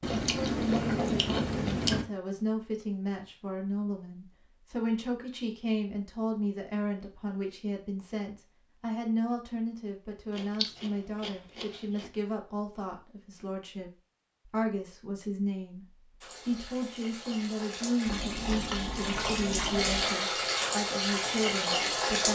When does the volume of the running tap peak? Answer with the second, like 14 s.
22 s.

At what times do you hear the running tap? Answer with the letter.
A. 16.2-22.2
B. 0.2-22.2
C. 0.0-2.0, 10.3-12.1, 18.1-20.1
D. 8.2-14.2
A.